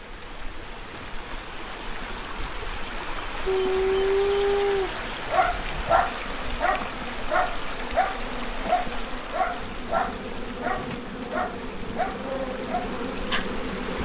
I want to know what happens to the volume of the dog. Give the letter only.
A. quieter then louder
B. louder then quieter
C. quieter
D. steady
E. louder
C.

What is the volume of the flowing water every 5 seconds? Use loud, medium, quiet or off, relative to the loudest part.
loud, loud, medium.